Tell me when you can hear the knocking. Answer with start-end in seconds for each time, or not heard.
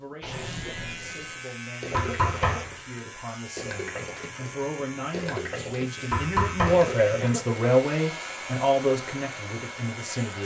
1.9-2.8, 6.1-6.9.